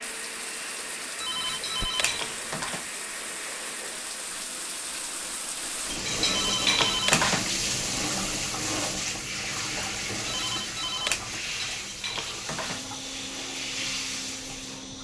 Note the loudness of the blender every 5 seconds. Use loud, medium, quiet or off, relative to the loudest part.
loud, off, loud.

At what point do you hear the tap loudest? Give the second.
8 s.